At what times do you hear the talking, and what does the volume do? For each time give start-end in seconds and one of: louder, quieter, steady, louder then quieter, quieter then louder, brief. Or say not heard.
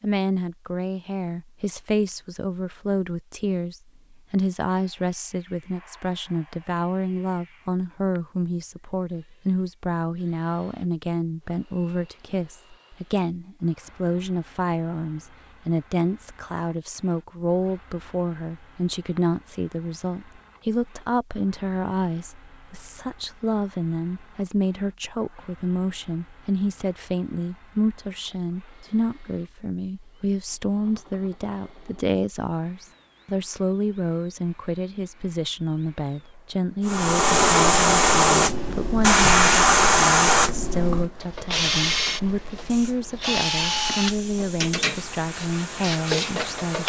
0.0-46.8 steady.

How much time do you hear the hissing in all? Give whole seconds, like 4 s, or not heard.
10 s.